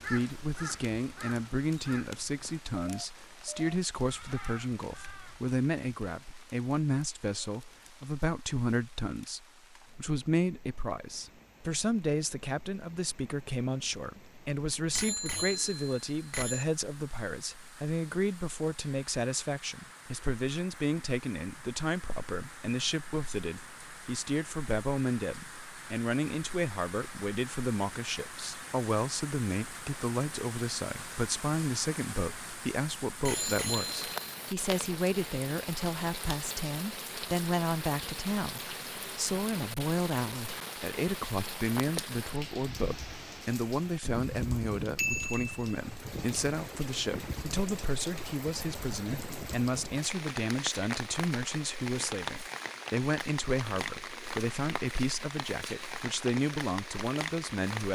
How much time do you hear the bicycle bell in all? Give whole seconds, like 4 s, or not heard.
3 s.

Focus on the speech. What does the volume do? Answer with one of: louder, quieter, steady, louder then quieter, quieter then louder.
steady.